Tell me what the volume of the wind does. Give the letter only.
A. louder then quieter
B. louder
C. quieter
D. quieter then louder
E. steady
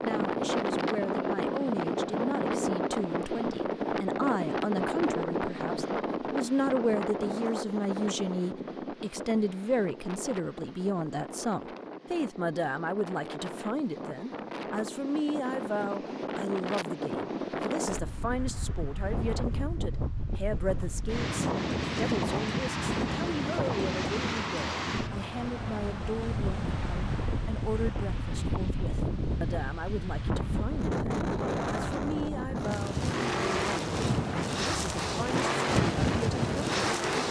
D.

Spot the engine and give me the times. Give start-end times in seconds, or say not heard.
32.9-37.2.